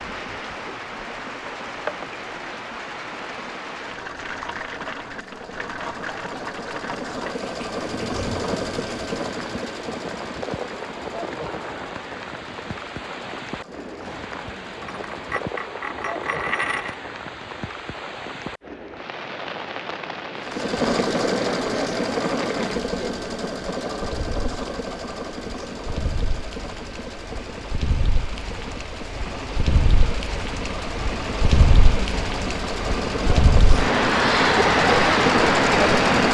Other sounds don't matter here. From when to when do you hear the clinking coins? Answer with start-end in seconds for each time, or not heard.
14.8-16.9.